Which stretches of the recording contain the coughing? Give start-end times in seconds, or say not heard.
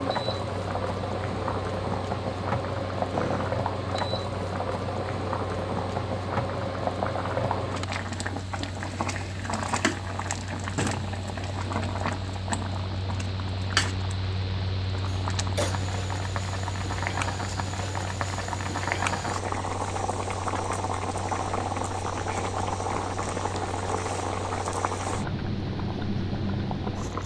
3.1-3.5, 15.1-15.8.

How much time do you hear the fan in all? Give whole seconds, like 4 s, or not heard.
27 s.